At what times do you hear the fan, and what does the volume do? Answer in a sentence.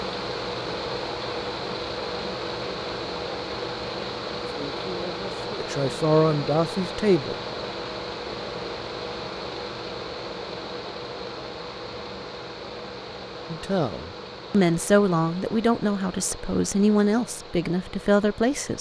The fan can be heard from 0.0 to 18.7 s, getting quieter.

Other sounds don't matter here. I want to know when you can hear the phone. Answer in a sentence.
You can't hear the phone here.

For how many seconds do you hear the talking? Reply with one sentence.
You can hear the talking for 8 seconds altogether.